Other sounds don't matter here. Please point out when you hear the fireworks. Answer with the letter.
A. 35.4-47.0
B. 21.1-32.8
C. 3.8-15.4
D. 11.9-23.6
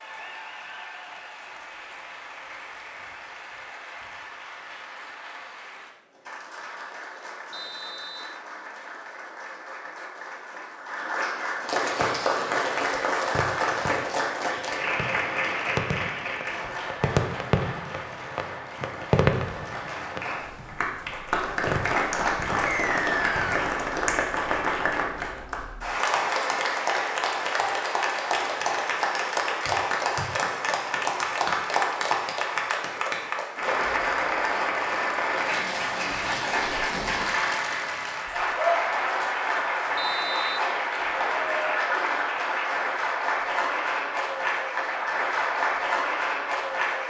D.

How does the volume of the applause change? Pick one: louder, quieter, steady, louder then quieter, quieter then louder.
louder.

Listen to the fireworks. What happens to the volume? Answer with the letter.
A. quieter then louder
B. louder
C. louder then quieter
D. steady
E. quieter
C.